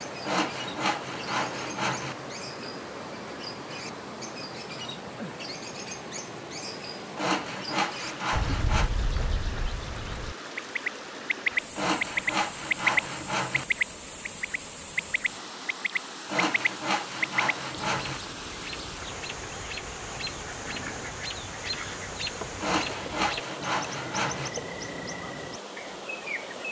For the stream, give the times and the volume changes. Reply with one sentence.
The stream can be heard from 0.0 to 26.6 s, at a steady volume.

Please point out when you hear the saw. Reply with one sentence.
The saw can be heard from 0.2 to 2.1 s, from 7.2 to 8.9 s, from 11.8 to 13.7 s, from 16.2 to 18.2 s and from 22.6 to 24.5 s.